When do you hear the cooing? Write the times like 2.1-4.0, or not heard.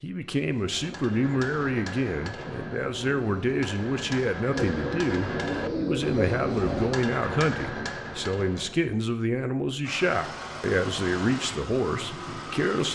4.5-6.9.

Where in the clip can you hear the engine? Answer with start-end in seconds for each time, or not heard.
9.8-12.8.